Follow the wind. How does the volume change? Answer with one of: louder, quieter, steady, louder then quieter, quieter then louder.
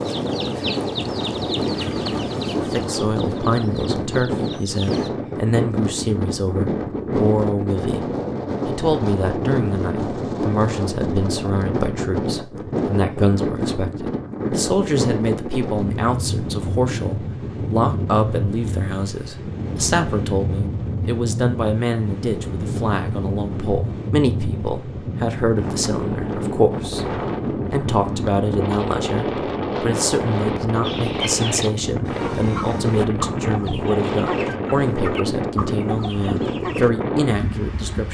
steady.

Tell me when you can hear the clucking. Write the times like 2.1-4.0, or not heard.
0.0-5.1, 30.8-36.9.